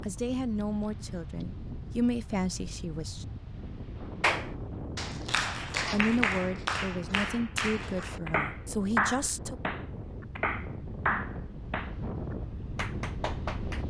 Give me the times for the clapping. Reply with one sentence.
You can hear the clapping from 4.2 to 13.8 s.